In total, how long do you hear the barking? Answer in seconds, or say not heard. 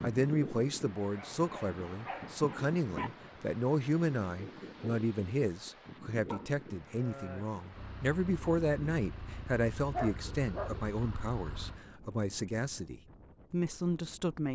4 s.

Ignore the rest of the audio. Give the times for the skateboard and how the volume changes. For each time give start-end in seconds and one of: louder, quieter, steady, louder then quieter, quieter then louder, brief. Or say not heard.
not heard.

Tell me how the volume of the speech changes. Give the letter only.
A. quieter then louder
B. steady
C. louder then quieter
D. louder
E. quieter
B.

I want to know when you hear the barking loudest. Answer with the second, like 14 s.
10 s.